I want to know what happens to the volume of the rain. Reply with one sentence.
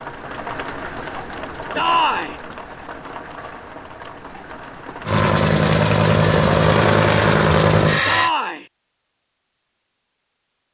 The volume of the rain goes down.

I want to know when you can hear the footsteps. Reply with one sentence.
You can't hear the footsteps here.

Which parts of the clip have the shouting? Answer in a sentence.
You can hear the shouting from 1.8 to 2.4 s and from 8.1 to 8.7 s.